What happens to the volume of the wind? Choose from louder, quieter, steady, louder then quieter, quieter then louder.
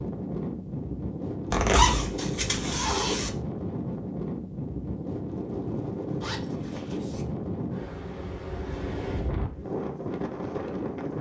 steady.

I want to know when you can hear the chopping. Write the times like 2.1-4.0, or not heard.
not heard.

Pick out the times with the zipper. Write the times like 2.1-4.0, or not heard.
1.5-3.3, 6.2-7.2.